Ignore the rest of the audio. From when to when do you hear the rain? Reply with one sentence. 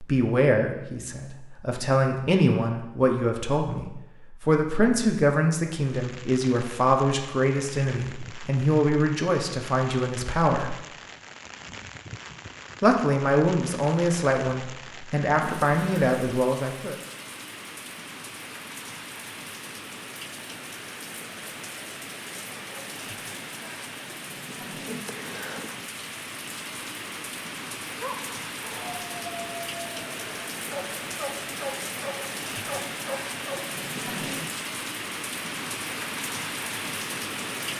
The rain can be heard from 5.8 to 37.7 s.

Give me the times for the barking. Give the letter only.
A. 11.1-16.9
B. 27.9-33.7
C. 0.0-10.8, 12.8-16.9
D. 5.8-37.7
B.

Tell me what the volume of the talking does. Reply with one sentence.
The loudness of the talking stays about the same.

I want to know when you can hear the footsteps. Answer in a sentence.
The footsteps can't be heard in this clip.